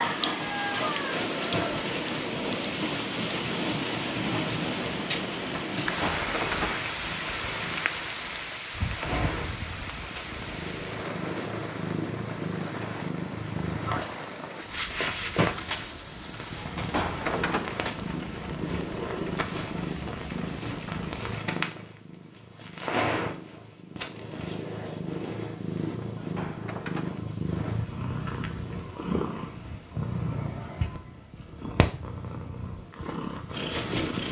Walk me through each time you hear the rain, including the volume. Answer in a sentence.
You can hear the rain from 0.0 to 21.3 s, getting quieter.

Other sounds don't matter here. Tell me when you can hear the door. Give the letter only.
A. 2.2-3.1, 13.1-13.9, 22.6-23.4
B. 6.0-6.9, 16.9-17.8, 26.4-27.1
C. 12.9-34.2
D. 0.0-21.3
B.